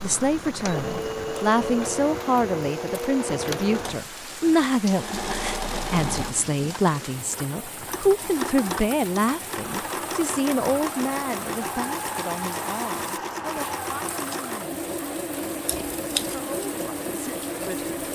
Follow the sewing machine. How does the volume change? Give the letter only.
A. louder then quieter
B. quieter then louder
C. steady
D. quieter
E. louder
C.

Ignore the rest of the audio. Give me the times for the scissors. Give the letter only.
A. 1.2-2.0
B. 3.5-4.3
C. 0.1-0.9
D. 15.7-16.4
D.